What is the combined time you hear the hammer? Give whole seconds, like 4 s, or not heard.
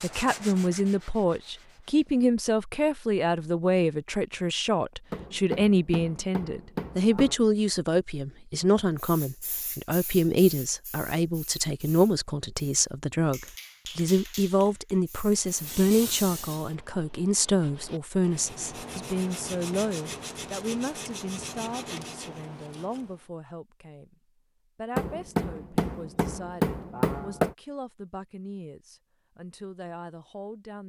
5 s.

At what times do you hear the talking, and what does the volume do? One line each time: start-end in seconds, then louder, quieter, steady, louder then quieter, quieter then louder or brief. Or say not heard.
0.0-24.1 quieter
24.8-30.8 steady.